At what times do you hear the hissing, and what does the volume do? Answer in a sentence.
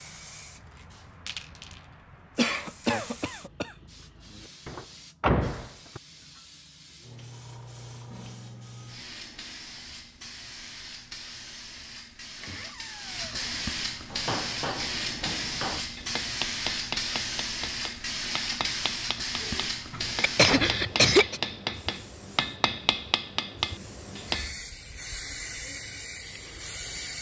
The hissing can be heard from 0.0 to 27.1 s, getting louder then quieter.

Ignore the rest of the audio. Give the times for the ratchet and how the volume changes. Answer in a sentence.
The ratchet can't be heard in this clip.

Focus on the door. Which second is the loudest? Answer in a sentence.
The loudest moment of the door is at 5 seconds.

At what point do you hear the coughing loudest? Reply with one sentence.
The loudest moment of the coughing is at 21 seconds.